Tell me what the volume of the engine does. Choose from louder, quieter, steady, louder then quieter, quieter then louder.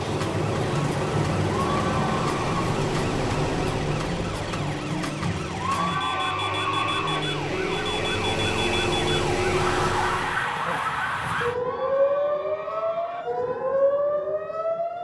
quieter then louder.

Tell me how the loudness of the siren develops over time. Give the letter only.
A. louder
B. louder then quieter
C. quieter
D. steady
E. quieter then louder
A.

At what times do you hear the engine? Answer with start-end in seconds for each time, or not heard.
0.0-10.4.